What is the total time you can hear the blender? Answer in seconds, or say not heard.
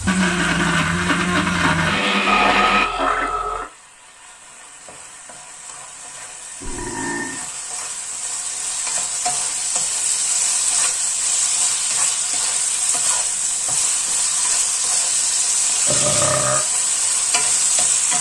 3 s.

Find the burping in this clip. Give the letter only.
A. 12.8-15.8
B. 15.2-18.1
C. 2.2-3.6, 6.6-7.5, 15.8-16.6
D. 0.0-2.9
C.